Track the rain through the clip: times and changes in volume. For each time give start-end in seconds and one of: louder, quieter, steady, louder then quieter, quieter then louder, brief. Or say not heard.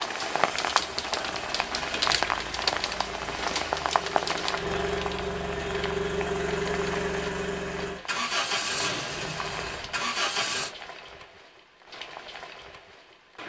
0.0-13.4 quieter.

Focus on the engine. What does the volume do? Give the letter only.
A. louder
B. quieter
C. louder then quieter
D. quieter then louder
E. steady
A.